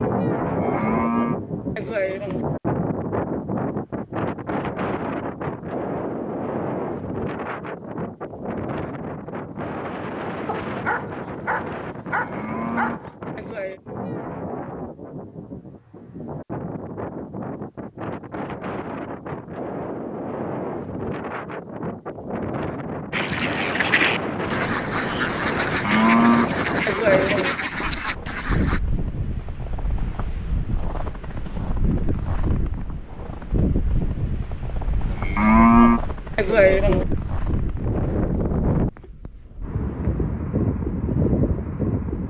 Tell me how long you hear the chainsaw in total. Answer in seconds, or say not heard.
not heard.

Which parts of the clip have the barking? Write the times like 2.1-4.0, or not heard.
10.4-13.2.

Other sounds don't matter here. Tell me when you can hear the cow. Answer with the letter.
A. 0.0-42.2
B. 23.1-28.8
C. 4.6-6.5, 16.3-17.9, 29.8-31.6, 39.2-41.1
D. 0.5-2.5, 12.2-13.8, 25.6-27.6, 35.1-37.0
D.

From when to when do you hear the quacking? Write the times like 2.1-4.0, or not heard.
23.1-28.8.